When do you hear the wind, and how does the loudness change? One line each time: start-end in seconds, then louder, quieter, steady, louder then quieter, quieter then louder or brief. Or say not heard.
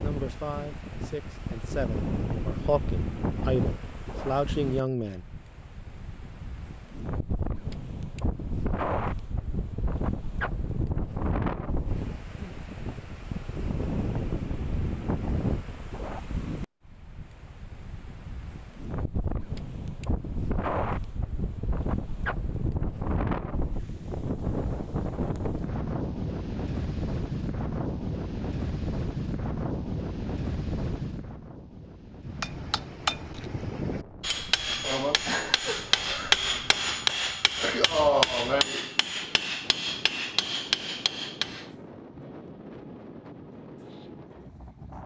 0.0-45.0 quieter.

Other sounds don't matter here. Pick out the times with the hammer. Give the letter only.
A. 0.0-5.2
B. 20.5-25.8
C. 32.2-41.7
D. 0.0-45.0
C.